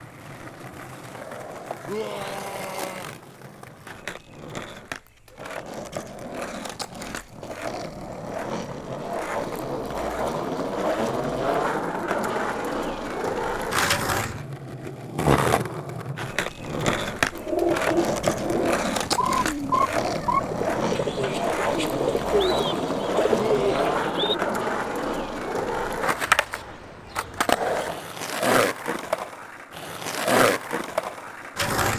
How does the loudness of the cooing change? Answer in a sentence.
The volume of the cooing stays about the same.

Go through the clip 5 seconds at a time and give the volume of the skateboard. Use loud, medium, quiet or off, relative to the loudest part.
quiet, medium, loud, loud, loud, loud, loud.